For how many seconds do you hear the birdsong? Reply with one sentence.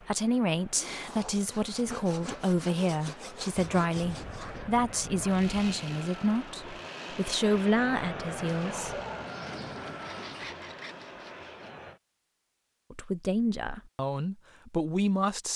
The birdsong can't be heard in this clip.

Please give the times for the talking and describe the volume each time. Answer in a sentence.
You can hear the talking from 0.1 to 9.0 s, at a steady volume; and briefly from 12.9 to 15.5 s.